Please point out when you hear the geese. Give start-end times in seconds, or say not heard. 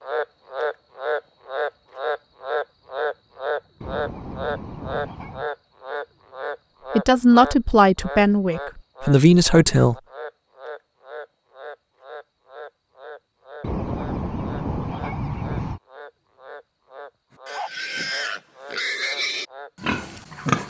3.8-5.5, 13.6-15.8.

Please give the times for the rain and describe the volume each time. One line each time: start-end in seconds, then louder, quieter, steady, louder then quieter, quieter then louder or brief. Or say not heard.
not heard.